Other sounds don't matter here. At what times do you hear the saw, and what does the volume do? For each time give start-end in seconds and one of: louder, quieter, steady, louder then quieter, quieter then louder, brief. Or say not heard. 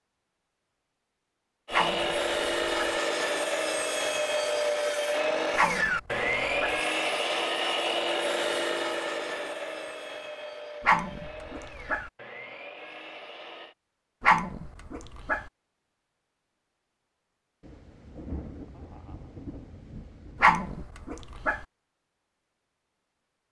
1.6-13.8 quieter.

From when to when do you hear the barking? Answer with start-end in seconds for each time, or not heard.
1.7-3.0, 5.5-6.8, 10.8-12.1, 14.2-15.4, 20.4-21.6.